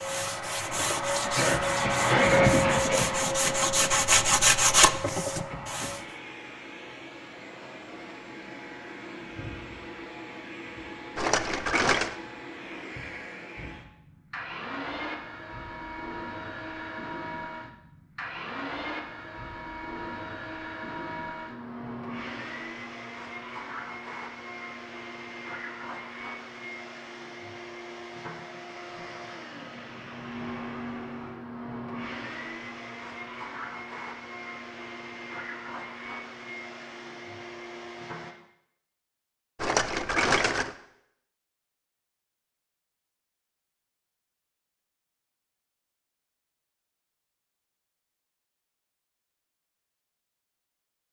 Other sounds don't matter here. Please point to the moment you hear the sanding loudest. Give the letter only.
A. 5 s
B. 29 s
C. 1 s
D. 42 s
A.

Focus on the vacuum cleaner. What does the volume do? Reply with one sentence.
The loudness of the vacuum cleaner goes down.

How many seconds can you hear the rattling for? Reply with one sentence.
The rattling can be heard for 2 seconds in total.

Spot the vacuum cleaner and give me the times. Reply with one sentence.
You can hear the vacuum cleaner from 0.0 to 38.4 s.